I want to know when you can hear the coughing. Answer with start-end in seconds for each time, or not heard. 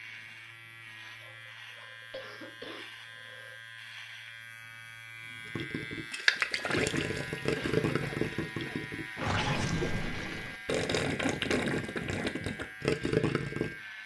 1.2-3.5, 7.5-9.4.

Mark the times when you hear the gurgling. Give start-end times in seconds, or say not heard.
5.5-13.8.